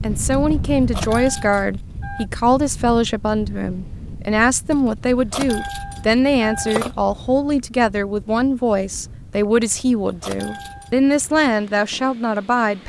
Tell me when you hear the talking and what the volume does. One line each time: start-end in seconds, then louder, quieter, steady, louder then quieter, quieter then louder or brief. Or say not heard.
0.0-12.8 steady.